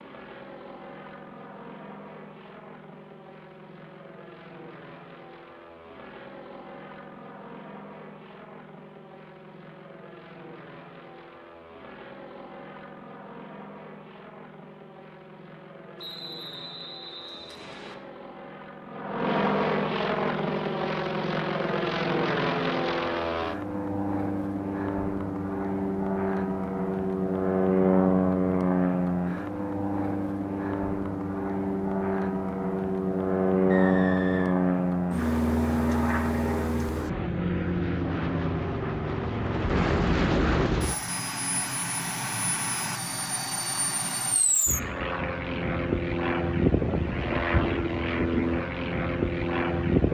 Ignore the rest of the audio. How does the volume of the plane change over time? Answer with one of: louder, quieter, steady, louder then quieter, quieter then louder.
louder.